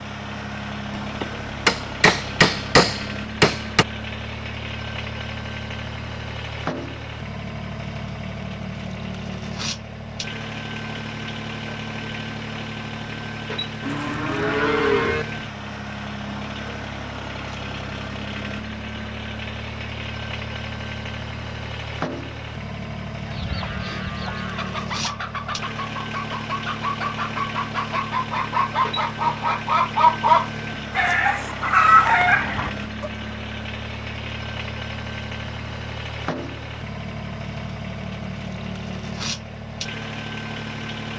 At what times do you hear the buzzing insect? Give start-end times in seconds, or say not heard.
not heard.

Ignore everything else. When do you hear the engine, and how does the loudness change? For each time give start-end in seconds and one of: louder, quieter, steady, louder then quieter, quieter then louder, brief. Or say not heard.
0.0-41.1 steady.